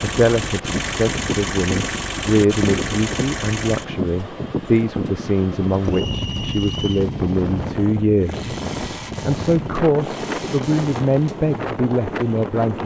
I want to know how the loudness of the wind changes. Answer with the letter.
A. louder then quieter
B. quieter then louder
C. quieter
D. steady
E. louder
D.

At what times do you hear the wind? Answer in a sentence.
You can hear the wind from 0.0 to 12.8 s.